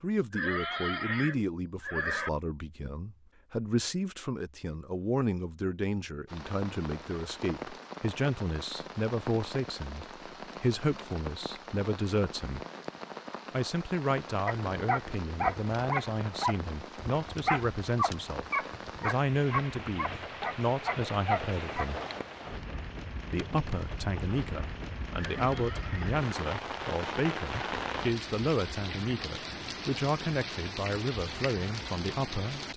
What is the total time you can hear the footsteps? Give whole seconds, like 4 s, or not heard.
not heard.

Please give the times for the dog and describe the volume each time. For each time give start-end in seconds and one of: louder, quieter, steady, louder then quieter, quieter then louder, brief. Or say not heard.
14.4-21.9 steady.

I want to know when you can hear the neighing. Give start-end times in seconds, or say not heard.
0.3-2.3, 25.1-26.2.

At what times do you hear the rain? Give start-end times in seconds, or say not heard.
6.2-32.7.